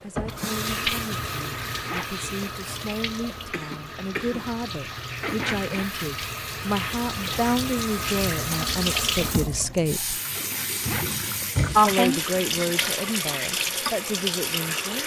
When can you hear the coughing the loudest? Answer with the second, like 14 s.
12 s.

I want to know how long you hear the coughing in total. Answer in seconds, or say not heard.
3 s.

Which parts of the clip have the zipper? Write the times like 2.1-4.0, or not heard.
1.3-2.5, 5.2-5.8, 10.3-11.4.